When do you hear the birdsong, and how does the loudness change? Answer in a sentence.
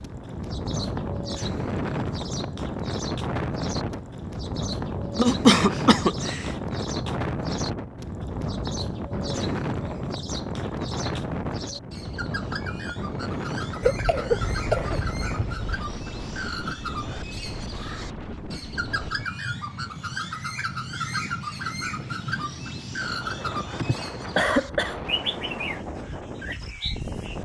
You can hear the birdsong from 0.0 to 27.3 s, getting louder.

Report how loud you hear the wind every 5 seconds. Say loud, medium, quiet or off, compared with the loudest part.
loud, loud, loud, medium, medium, medium.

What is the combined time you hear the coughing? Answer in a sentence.
You can hear the coughing for 5 seconds altogether.